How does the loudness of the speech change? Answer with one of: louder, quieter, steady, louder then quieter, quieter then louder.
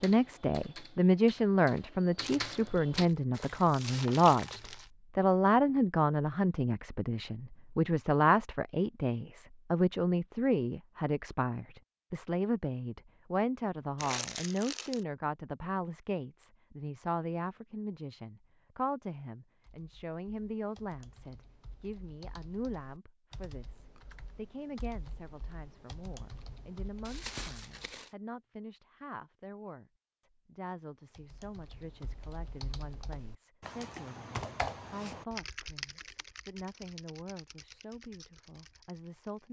quieter.